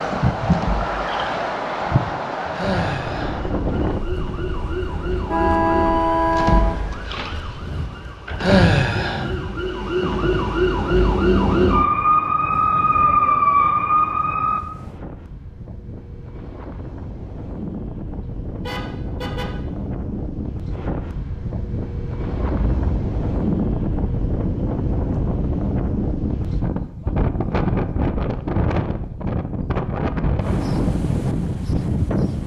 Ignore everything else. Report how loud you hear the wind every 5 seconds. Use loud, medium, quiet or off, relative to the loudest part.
loud, quiet, quiet, medium, loud, loud, loud.